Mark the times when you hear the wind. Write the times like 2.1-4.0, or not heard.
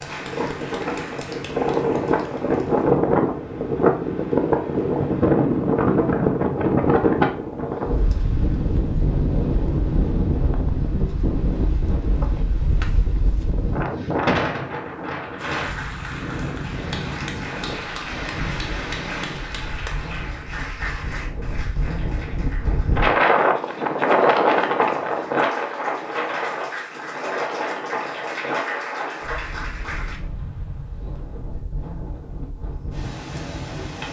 0.0-34.0.